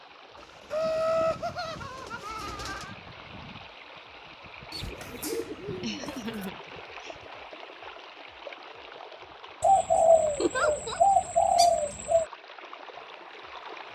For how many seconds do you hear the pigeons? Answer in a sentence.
You can hear the pigeons for 7 seconds altogether.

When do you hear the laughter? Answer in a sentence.
You can hear the laughter from 0.7 to 3.0 s, from 5.8 to 7.2 s and from 10.4 to 11.0 s.